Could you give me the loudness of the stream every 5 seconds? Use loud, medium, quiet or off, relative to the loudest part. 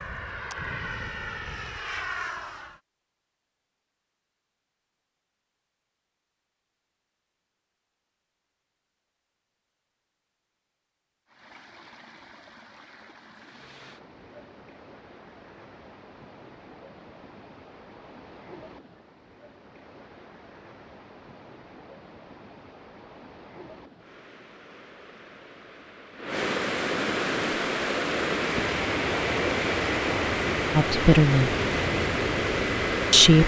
off, off, quiet, quiet, quiet, loud, loud.